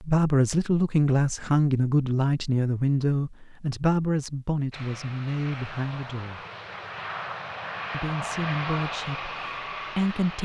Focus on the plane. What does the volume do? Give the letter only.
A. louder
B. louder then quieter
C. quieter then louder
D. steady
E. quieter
A.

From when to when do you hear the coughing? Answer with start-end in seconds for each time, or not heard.
not heard.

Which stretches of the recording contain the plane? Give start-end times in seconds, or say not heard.
4.7-10.3.